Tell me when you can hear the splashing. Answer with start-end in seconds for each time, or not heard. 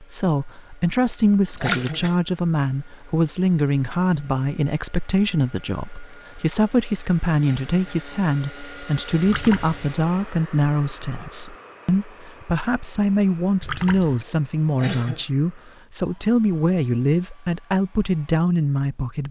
1.6-2.1, 9.2-9.9, 13.6-14.2.